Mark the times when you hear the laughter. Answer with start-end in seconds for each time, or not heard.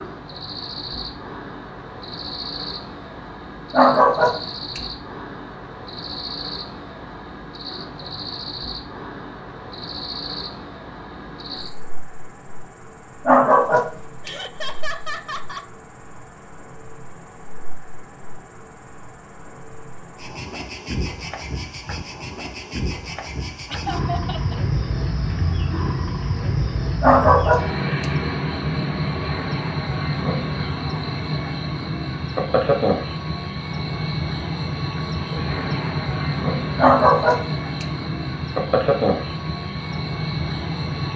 14.2-15.7, 23.7-24.6.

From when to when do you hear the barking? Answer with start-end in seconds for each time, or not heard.
3.7-4.8, 13.2-14.3, 27.0-28.1, 36.8-37.9.